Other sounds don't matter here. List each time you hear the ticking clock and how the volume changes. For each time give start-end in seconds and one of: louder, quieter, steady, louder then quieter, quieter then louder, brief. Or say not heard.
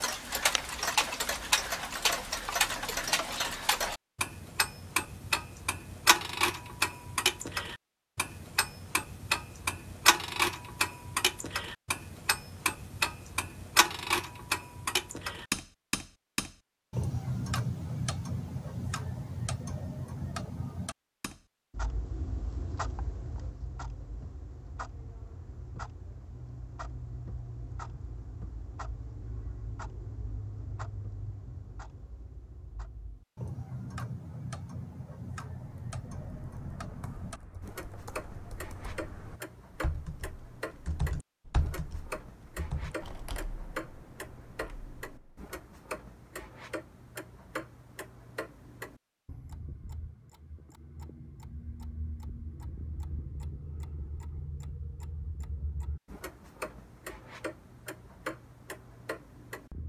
0.0-59.8 quieter.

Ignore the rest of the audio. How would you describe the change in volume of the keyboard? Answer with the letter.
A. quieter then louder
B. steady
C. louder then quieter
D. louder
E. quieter
C.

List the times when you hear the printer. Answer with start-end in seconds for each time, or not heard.
not heard.